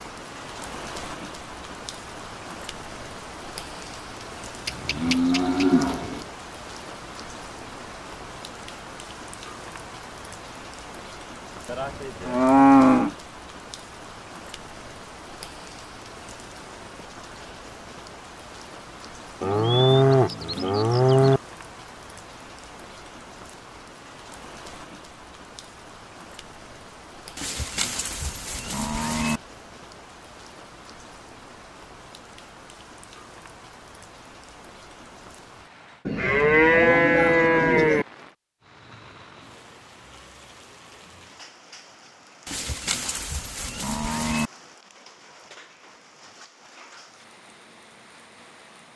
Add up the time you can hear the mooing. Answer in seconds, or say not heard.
11 s.